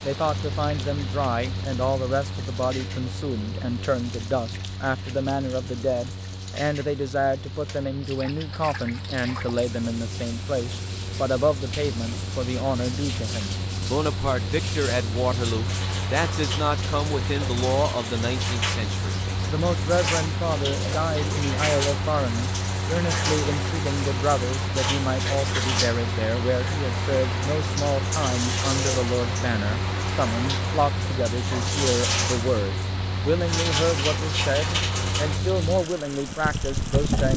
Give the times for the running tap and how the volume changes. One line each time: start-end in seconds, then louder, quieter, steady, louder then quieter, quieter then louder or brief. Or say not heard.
0.0-37.3 louder.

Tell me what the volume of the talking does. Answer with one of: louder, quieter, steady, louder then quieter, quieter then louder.
steady.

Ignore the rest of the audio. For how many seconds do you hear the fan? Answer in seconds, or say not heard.
37 s.